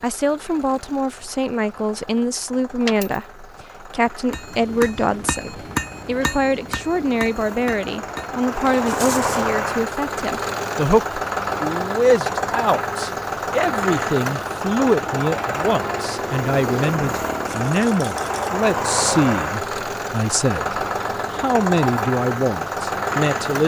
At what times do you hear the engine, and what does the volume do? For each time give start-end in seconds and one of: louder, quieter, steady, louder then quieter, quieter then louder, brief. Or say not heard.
0.0-23.6 louder.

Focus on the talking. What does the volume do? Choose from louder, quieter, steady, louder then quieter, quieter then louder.
steady.